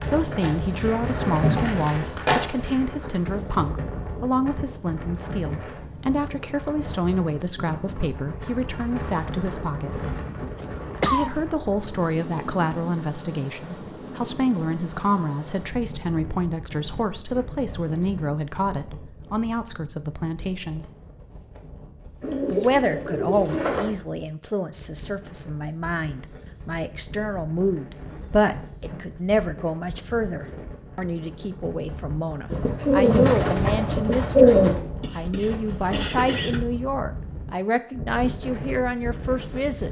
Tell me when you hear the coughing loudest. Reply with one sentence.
The loudest moment of the coughing is at 11 seconds.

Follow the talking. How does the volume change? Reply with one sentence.
The volume of the talking stays about the same.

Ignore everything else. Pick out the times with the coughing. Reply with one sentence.
The coughing can be heard from 10.6 to 11.3 s and from 35.0 to 36.6 s.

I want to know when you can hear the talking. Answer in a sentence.
The talking can be heard from 0.0 to 10.1 s, from 11.1 to 20.9 s and from 22.5 to 39.8 s.